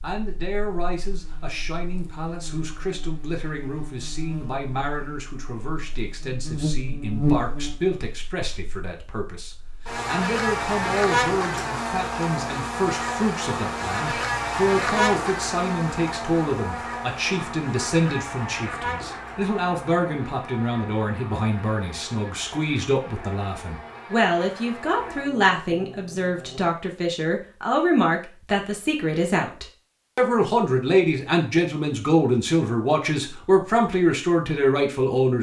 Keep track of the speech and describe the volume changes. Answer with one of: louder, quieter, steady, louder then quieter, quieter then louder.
louder.